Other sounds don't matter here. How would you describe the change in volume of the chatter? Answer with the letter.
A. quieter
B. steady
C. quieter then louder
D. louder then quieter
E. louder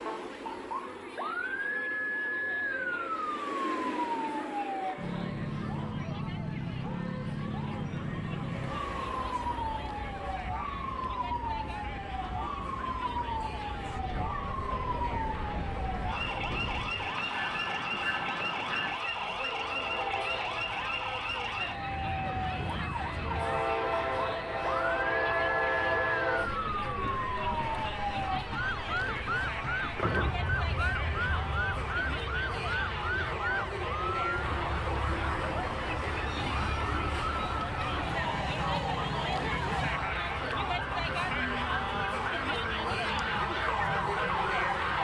E.